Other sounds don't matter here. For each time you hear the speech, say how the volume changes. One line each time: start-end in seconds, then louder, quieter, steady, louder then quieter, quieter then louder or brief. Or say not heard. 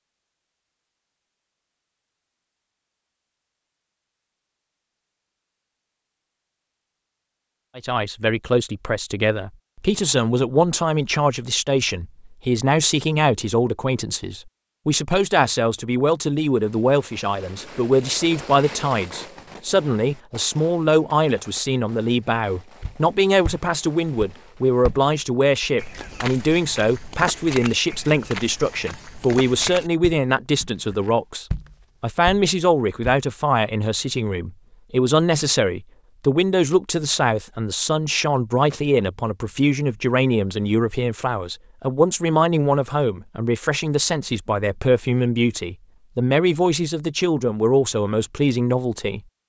7.8-49.2 steady.